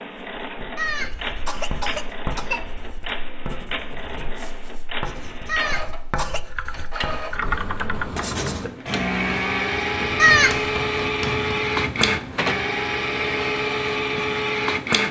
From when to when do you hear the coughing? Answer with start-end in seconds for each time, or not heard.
0.8-2.6, 5.5-6.4, 10.2-10.7.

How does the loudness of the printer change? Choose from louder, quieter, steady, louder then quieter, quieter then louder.
louder.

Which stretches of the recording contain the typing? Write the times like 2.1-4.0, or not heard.
6.5-8.5.